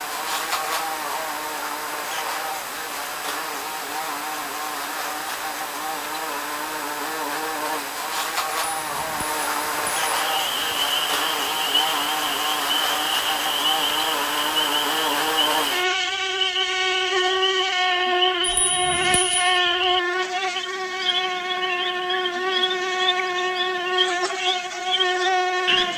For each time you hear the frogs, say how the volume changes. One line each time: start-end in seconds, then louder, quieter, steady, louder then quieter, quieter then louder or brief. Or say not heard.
10.2-25.9 steady.